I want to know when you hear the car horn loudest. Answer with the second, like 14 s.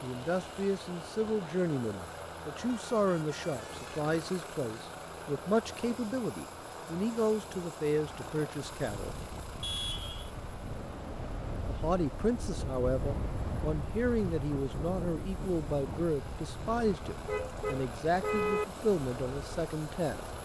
18 s.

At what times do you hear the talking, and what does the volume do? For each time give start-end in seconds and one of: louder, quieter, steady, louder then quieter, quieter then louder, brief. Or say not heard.
0.0-9.2 steady
11.7-20.2 steady.